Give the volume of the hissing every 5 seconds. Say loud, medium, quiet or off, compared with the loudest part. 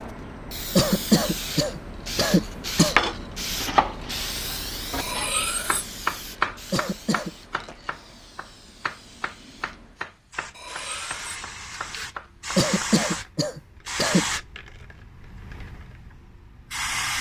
loud, medium, loud, loud.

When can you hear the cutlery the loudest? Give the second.
5 s.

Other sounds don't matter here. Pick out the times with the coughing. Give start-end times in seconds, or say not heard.
0.8-3.0, 6.7-7.3, 12.6-14.2.